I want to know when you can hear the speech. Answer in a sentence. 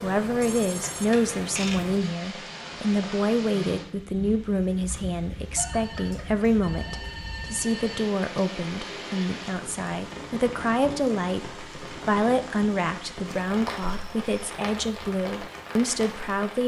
You can hear the speech from 0.0 to 16.6 s.